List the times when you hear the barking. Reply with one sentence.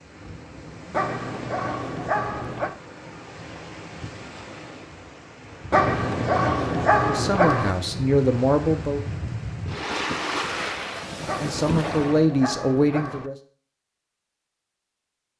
The barking can be heard from 0.9 to 2.8 s, from 5.7 to 7.8 s and from 11.2 to 13.3 s.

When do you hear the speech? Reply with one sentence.
The speech can be heard from 7.0 to 9.0 s and from 11.2 to 13.3 s.